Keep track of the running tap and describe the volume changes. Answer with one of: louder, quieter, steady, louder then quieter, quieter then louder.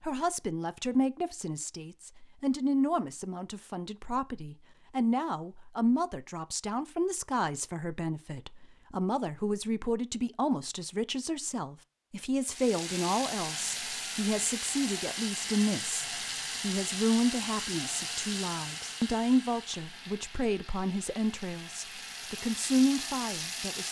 quieter then louder.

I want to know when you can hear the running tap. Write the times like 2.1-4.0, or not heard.
12.4-23.8.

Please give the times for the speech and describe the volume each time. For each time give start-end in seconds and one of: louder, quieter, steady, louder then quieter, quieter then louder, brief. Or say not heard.
0.0-23.8 steady.